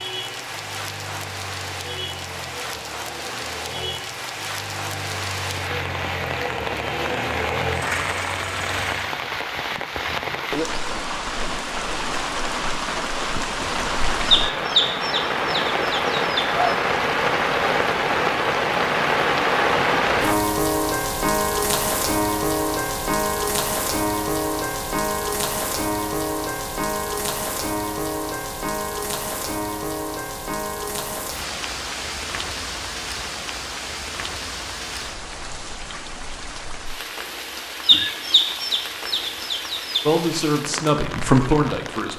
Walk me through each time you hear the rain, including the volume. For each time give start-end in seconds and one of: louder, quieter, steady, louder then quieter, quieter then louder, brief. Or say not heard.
0.0-42.1 louder then quieter.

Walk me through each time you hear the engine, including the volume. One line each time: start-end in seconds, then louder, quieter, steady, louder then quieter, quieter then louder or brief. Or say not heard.
0.0-9.1 louder.